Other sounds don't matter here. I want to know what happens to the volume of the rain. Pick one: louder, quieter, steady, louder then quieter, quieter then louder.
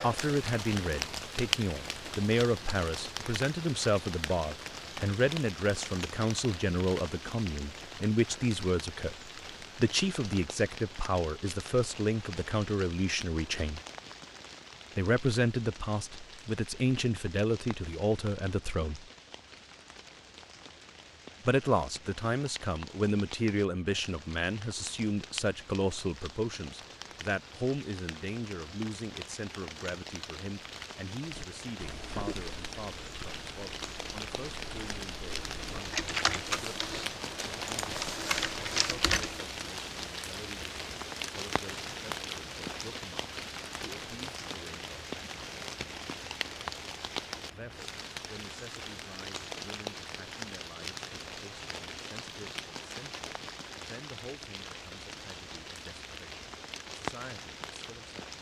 quieter then louder.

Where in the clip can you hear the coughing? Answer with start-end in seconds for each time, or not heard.
not heard.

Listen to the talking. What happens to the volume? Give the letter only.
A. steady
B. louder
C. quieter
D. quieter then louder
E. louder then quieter
C.